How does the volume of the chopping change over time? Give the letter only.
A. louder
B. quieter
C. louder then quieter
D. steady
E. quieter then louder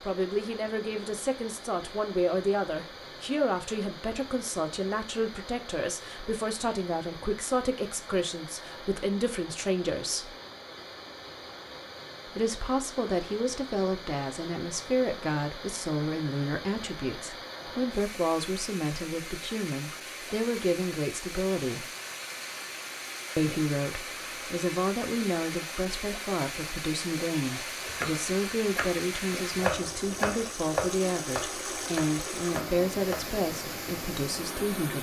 C.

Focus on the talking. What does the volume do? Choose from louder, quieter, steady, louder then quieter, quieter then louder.
steady.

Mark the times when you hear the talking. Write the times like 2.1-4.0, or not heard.
0.0-10.3, 12.3-21.9, 23.4-34.9.